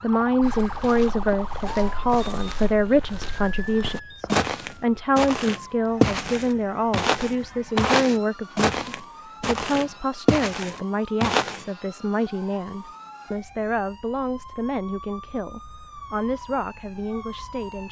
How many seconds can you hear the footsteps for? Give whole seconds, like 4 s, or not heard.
11 s.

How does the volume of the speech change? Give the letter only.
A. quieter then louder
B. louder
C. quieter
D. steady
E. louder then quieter
C.